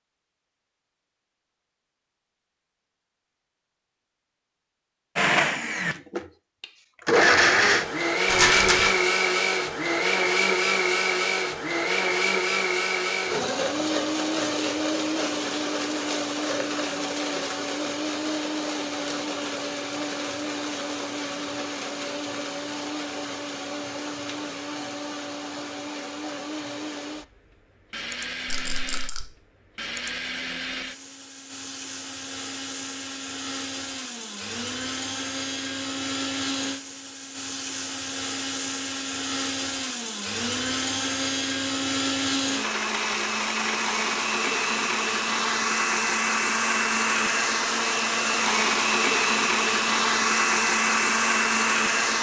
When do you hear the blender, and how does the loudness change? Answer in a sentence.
The blender can be heard from 5.2 to 52.1 s, getting quieter then louder.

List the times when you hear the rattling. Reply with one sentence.
You can hear the rattling from 8.2 to 9.0 s and from 28.4 to 29.2 s.